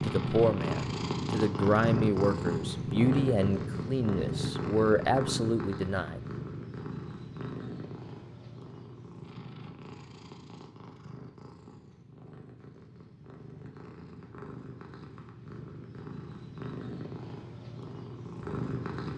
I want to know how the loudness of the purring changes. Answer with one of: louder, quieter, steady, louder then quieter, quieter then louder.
quieter then louder.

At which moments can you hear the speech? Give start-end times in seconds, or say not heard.
0.0-6.2.